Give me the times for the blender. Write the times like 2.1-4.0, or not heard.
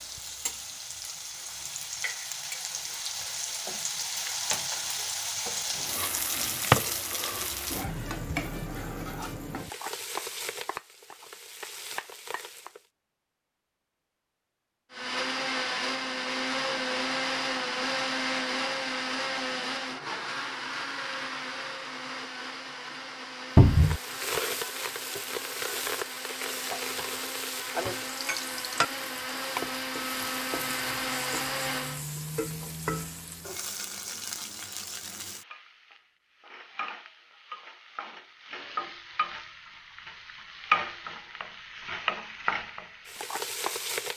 14.9-32.0.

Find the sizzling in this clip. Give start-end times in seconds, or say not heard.
0.0-12.8, 23.6-44.1.